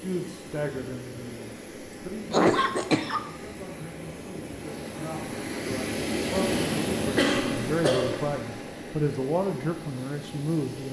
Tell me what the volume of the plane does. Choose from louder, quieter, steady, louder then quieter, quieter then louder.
louder then quieter.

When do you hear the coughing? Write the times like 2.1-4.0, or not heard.
2.3-3.2, 7.2-8.3.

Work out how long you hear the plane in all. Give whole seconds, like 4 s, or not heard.
11 s.